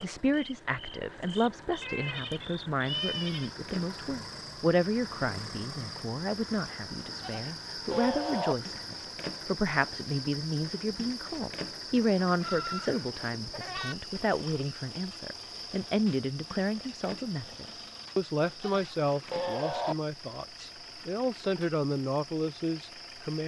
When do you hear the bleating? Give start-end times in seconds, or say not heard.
1.8-3.5, 7.2-8.6, 12.4-13.9, 18.6-19.9.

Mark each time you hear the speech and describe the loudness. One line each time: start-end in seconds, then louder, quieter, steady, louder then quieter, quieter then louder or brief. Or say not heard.
0.0-23.4 steady.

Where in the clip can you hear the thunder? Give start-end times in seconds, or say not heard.
not heard.